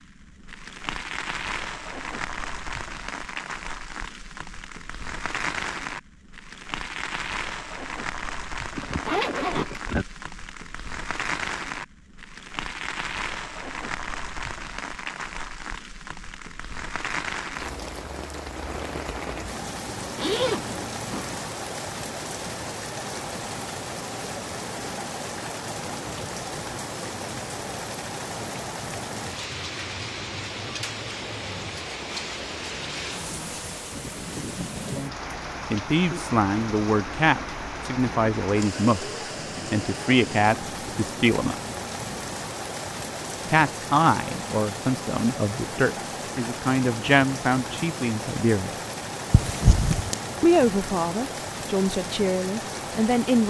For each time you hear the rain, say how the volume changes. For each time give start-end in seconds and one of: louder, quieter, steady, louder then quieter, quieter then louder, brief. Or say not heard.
0.0-53.4 steady.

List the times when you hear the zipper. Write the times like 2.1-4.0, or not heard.
8.8-10.1, 20.1-21.4, 49.3-50.1.